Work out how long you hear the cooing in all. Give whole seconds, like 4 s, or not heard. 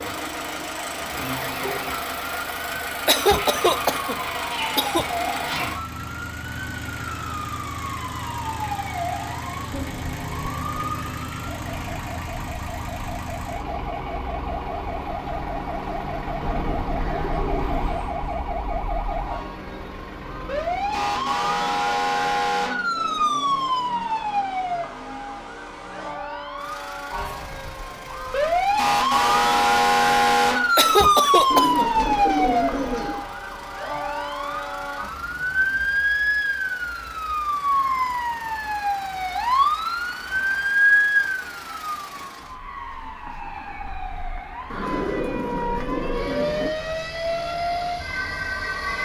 8 s.